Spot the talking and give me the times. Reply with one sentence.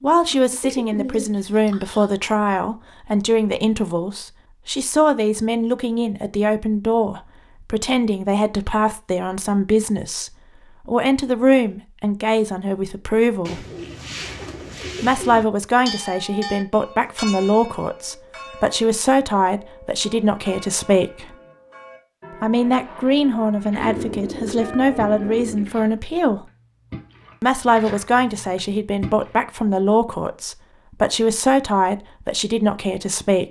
The talking can be heard from 0.0 to 13.7 s, from 15.0 to 21.4 s, from 22.4 to 26.4 s and from 27.4 to 33.4 s.